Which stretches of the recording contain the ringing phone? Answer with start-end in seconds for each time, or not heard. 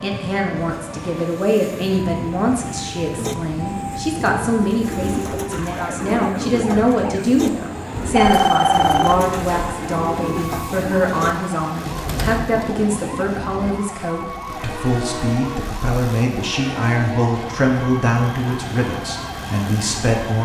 8.0-9.7.